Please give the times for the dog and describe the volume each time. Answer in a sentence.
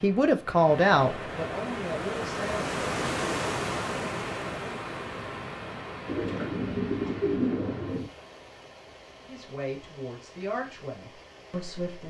The dog can't be heard in this clip.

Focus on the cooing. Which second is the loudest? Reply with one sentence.
The volume of the cooing peaks at 7 seconds.